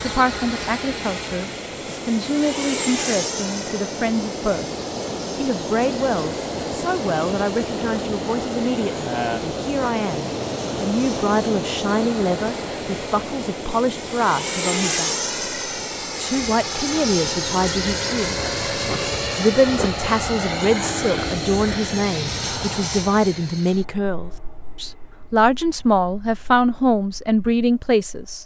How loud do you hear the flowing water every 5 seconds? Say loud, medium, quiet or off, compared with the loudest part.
medium, loud, loud, medium, off, off.